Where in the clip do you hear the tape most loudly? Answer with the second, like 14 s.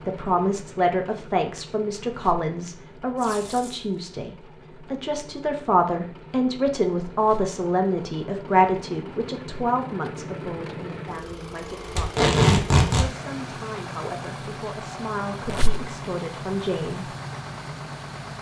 12 s.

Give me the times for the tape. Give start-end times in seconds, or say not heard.
3.1-3.8, 11.9-13.1.